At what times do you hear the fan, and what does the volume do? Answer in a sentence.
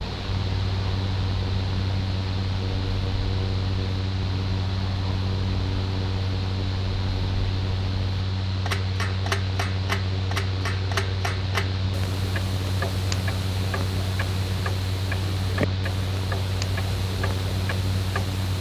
You can hear the fan from 0.0 to 18.5 s, at a steady volume.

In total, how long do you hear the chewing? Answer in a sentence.
The chewing can't be heard in this clip.